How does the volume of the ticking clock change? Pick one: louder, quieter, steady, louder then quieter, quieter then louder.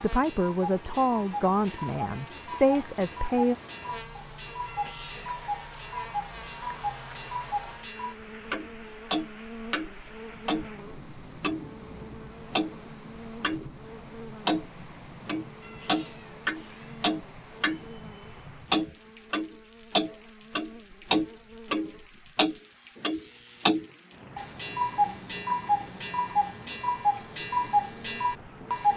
louder.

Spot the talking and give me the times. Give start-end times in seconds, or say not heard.
0.0-3.5.